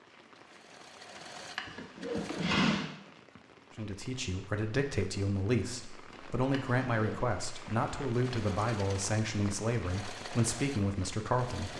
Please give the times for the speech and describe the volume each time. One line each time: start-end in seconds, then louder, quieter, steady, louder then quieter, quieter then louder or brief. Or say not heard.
3.8-11.7 steady.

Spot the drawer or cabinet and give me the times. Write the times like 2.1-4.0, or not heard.
1.1-2.9, 6.1-7.2.